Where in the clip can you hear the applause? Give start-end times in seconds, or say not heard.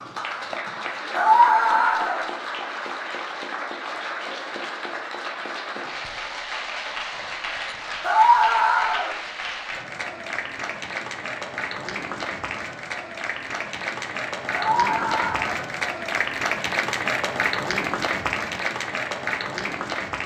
0.0-20.2.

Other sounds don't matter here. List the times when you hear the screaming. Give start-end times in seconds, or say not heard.
1.1-2.2, 8.0-9.1, 14.5-15.6.